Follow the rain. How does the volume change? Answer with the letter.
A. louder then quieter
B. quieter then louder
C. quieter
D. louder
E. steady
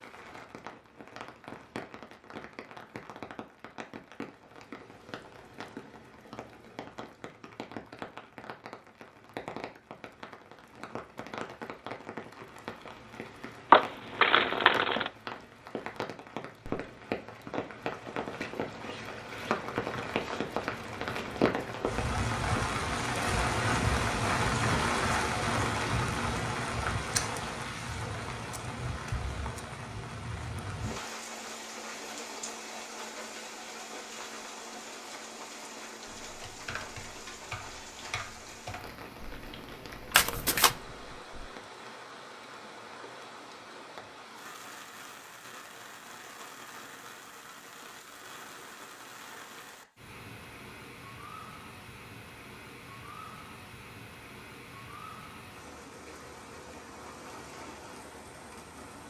A.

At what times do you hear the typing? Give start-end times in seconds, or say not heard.
36.0-41.5.